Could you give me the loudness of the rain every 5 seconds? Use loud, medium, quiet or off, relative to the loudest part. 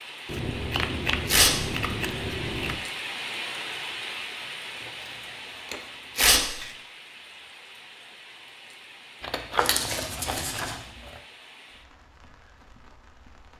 loud, medium, quiet.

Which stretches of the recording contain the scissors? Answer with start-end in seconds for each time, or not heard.
0.2-2.8, 4.8-6.8, 9.2-11.2.